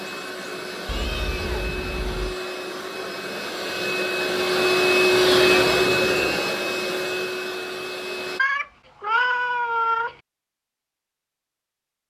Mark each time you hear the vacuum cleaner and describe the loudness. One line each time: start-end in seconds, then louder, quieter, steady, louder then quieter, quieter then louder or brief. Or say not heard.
0.0-8.4 louder then quieter.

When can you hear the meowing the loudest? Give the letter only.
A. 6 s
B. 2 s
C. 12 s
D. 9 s
D.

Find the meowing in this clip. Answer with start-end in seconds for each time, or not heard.
0.8-2.4, 5.1-6.5, 8.3-10.2.